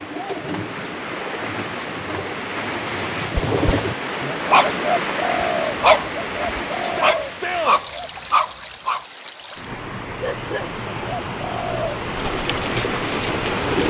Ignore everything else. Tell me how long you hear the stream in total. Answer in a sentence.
The stream can be heard for 14 seconds in total.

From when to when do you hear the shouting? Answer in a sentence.
The shouting can be heard from 6.8 to 7.8 s.